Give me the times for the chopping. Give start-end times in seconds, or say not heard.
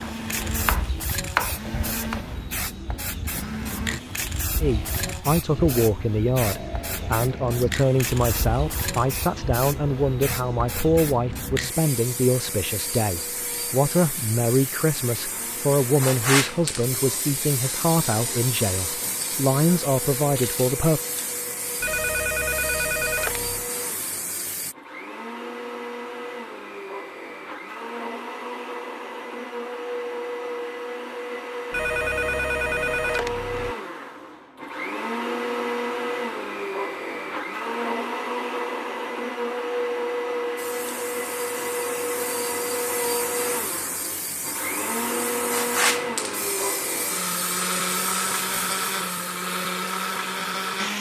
0.0-2.2.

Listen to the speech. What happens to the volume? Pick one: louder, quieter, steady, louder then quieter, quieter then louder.
steady.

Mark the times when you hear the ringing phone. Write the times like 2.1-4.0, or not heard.
21.8-23.7, 31.7-33.8.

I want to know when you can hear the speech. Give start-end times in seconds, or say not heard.
4.6-21.0.